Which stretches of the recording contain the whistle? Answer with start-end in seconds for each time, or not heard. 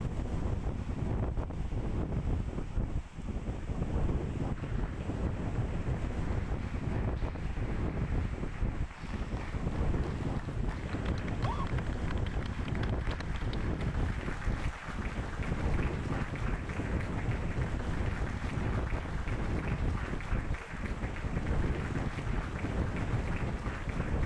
not heard.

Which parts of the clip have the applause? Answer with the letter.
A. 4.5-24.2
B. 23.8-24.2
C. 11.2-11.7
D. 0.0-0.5
A.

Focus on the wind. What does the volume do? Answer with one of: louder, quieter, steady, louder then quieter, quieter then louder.
steady.